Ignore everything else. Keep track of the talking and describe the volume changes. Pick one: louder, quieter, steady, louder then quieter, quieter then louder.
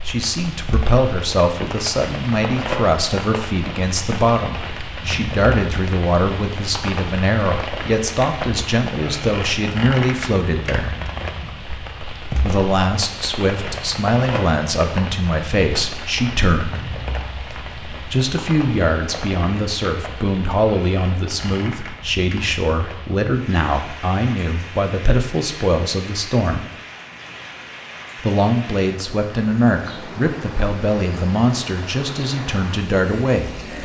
steady.